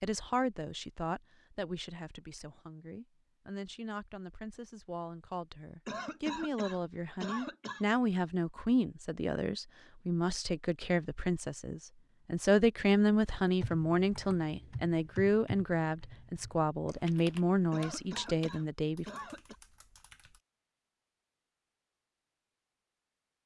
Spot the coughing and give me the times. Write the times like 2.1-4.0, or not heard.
5.8-7.8, 17.7-19.6.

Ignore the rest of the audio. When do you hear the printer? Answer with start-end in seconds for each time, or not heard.
not heard.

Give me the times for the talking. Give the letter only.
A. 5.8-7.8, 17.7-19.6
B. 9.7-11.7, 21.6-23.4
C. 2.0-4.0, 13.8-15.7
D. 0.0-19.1
D.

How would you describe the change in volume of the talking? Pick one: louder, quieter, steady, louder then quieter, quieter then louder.
louder.